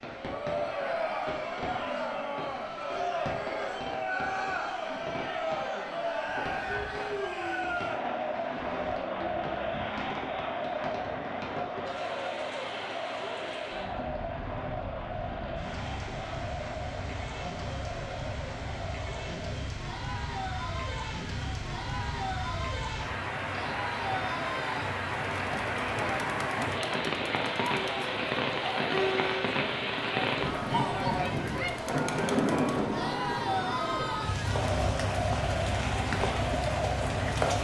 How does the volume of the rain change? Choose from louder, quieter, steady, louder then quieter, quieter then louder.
louder.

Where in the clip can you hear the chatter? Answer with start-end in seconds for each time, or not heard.
0.1-37.5.